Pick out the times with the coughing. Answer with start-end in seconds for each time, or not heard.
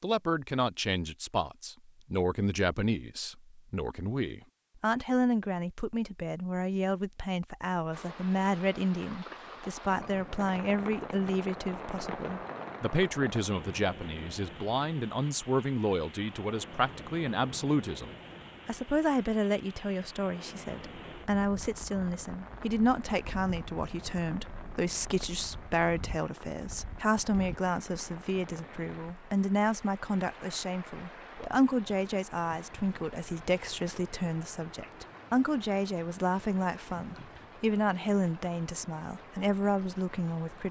not heard.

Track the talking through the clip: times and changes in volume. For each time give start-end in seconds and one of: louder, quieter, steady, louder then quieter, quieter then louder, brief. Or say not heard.
0.0-40.6 steady.